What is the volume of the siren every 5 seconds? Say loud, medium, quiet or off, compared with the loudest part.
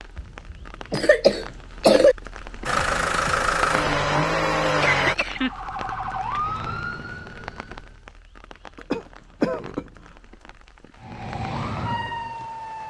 off, loud, loud.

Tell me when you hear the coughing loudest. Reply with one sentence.
The volume of the coughing peaks at 2 seconds.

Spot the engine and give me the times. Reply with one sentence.
The engine can be heard from 2.6 to 5.2 s.